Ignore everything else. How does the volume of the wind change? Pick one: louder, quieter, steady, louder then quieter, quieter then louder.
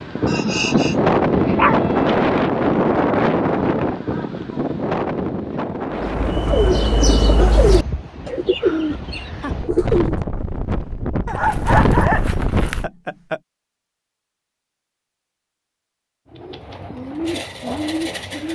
quieter then louder.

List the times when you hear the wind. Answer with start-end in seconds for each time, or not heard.
0.0-12.9.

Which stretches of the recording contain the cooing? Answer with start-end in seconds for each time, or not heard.
6.0-10.2, 16.3-18.4.